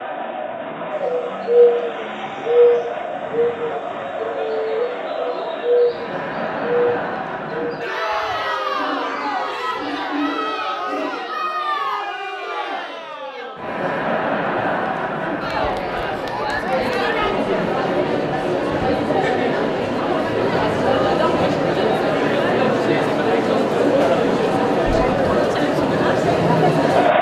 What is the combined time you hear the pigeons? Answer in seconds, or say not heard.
10 s.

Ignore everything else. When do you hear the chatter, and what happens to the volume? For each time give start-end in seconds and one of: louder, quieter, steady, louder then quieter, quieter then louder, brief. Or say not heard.
0.0-27.1 louder.